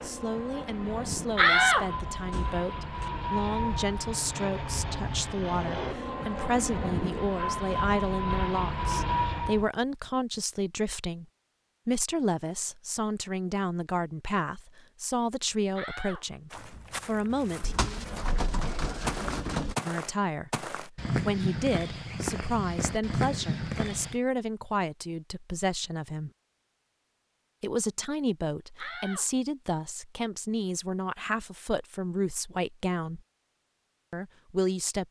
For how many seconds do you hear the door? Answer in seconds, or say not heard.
4 s.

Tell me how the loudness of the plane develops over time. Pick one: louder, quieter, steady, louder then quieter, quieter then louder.
louder.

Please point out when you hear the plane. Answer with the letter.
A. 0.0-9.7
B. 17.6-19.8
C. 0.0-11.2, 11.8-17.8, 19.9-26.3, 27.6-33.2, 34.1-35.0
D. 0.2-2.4
A.